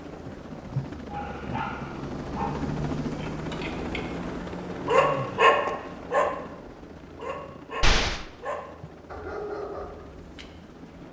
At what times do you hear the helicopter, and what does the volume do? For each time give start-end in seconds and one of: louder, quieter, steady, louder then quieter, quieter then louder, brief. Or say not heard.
0.0-11.0 quieter.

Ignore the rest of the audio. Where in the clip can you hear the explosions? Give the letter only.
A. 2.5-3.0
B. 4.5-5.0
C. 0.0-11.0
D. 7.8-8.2
D.